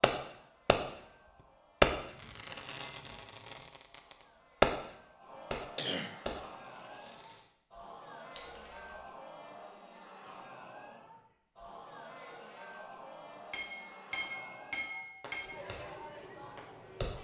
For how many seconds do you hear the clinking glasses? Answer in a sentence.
The clinking glasses can be heard for 4 seconds in total.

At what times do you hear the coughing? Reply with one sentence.
You can hear the coughing from 5.8 to 6.2 s.